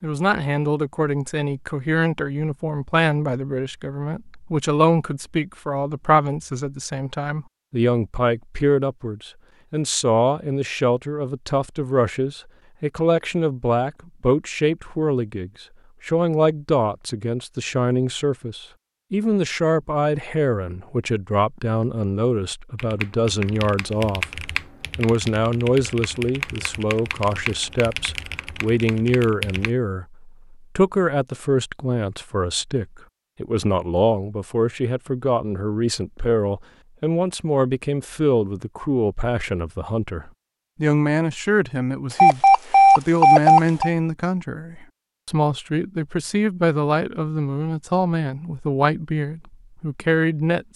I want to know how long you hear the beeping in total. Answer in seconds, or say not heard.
2 s.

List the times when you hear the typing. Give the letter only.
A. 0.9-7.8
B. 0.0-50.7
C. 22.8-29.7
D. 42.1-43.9
C.